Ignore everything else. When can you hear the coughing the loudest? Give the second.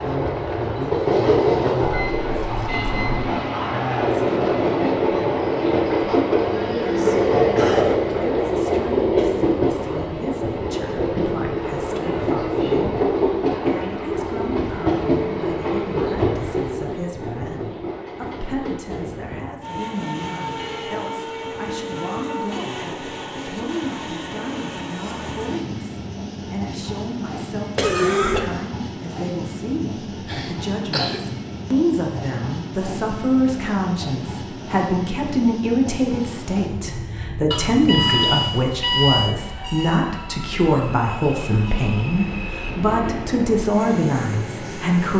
28 s.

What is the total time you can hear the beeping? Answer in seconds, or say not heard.
3 s.